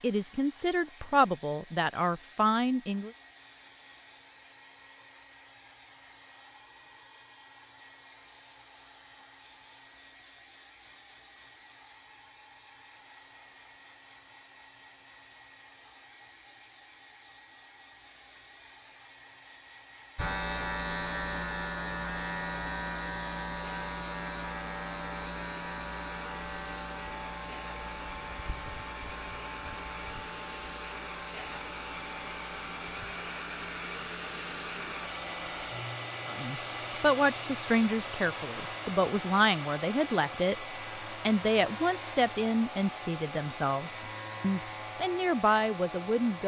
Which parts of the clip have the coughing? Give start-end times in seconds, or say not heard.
not heard.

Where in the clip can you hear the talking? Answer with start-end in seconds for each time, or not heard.
0.0-3.1, 36.2-46.4.